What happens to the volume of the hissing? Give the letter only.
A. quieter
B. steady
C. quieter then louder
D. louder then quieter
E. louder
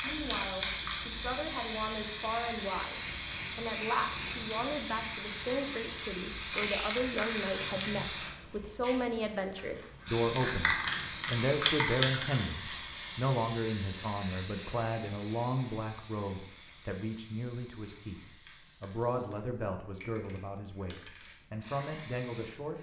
A.